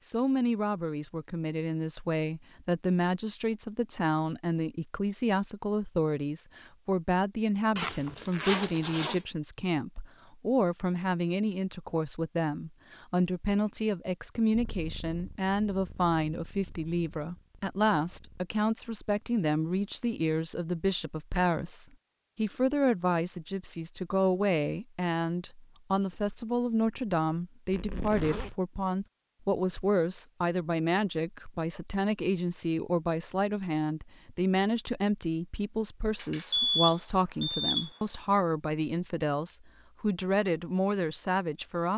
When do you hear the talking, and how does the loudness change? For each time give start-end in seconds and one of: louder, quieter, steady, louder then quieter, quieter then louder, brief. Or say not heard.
0.0-41.9 steady.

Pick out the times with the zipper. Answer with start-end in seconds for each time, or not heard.
7.8-9.2, 27.7-28.6.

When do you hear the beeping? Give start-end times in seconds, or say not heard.
36.1-37.9.